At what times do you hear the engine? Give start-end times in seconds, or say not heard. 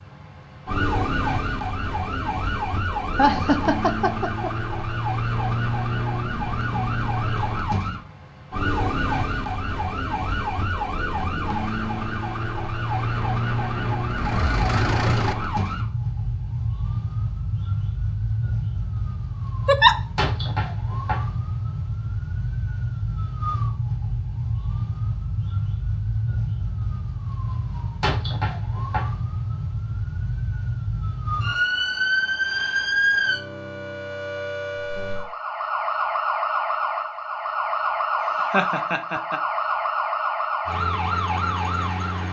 12.9-15.3.